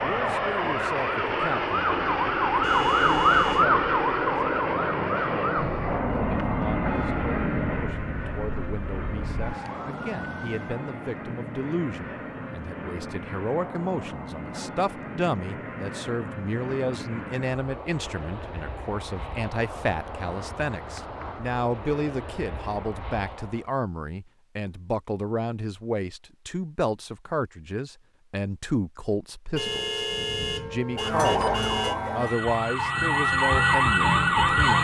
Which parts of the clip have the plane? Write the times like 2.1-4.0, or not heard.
0.0-23.7.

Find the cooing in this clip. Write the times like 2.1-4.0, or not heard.
not heard.